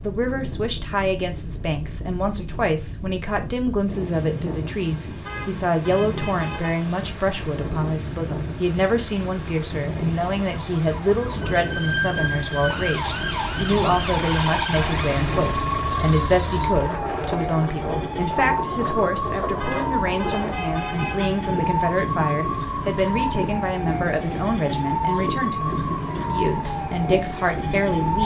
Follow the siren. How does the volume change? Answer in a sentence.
The volume of the siren stays about the same.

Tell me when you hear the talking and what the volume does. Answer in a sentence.
You can hear the talking from 0.0 to 28.2 s, at a steady volume.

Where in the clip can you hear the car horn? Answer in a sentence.
The car horn can be heard from 5.2 to 6.8 s and from 19.6 to 21.3 s.